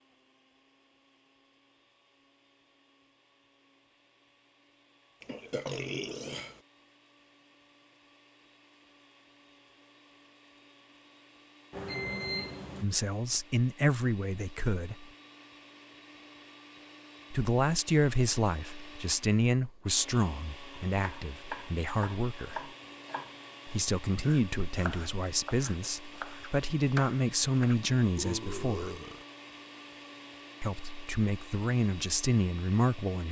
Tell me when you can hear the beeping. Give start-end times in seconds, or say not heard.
11.7-12.8.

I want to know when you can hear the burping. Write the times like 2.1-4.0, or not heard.
5.2-6.6, 28.0-29.2.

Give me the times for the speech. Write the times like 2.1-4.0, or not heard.
12.8-15.1, 17.3-22.7, 23.6-28.9, 30.6-33.2.